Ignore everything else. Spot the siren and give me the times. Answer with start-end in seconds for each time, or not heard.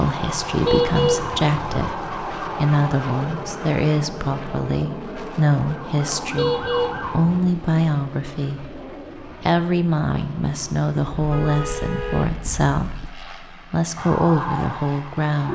0.0-7.2, 13.9-15.5.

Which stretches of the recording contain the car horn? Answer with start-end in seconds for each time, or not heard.
0.6-1.9, 6.3-7.2, 11.2-13.1.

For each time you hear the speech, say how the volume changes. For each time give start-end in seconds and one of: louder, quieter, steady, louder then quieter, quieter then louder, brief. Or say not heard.
0.0-15.5 steady.